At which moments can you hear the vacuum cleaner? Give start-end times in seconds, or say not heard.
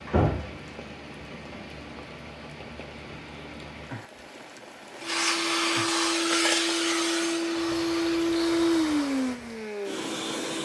5.0-10.6.